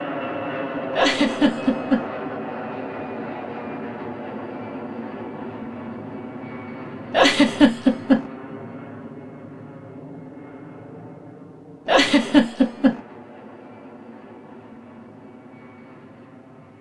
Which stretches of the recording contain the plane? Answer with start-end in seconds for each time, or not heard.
0.0-16.7.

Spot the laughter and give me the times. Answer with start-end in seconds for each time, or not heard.
0.9-2.0, 7.1-8.2, 11.8-13.0.